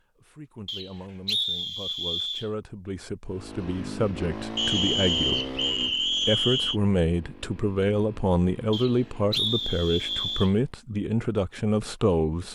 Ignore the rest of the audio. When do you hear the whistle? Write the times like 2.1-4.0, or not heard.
0.7-2.5, 4.5-6.8, 8.7-10.6.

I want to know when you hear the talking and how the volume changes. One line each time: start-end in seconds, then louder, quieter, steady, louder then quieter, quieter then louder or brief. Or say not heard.
0.1-12.5 louder.